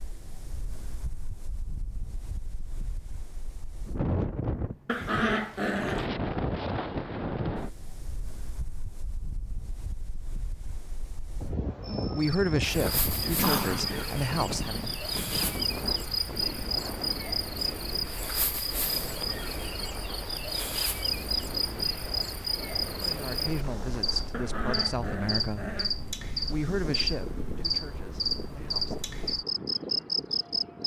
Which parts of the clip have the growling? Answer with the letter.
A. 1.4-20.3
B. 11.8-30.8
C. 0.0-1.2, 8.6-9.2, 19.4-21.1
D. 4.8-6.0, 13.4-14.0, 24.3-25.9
D.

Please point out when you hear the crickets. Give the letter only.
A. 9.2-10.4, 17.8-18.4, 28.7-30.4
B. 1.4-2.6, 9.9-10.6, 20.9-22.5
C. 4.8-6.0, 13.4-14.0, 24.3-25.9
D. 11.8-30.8
D.